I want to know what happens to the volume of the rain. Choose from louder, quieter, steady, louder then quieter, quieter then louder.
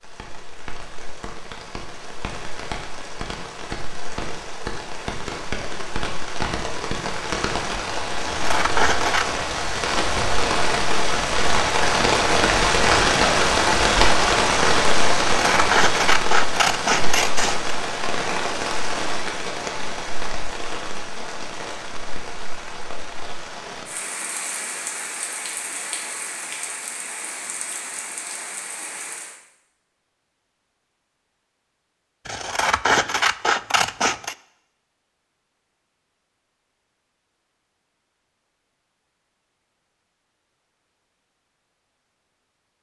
louder then quieter.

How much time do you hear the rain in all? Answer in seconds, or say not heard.
29 s.